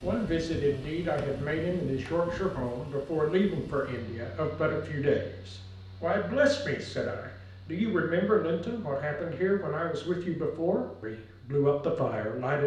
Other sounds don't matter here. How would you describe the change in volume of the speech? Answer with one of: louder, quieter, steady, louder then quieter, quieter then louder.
steady.